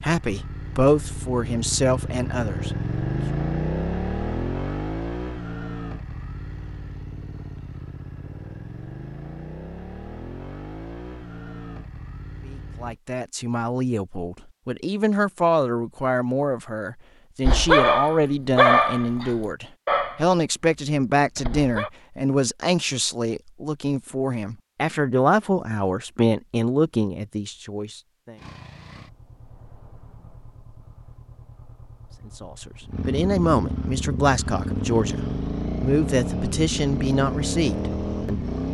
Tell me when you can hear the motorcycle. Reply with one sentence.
The motorcycle can be heard from 0.0 to 13.0 s and from 28.4 to 38.6 s.